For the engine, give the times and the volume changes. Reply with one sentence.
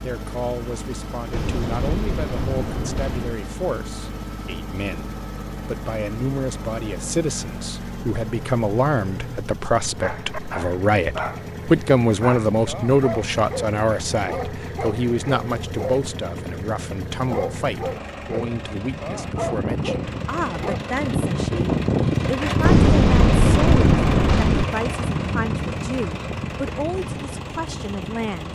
You can hear the engine from 0.0 to 28.4 s, getting louder.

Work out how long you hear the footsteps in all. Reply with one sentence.
The footsteps can't be heard in this clip.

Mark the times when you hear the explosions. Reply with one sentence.
The explosions can be heard from 1.3 to 3.4 s and from 22.6 to 24.6 s.